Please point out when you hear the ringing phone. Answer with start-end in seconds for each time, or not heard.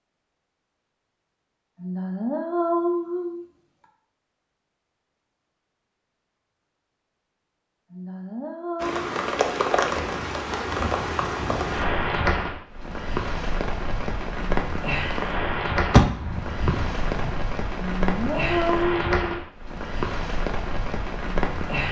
not heard.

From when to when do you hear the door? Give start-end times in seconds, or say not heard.
15.9-17.3.